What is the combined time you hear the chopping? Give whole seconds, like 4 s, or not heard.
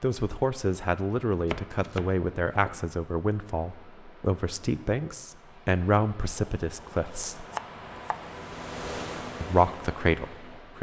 3 s.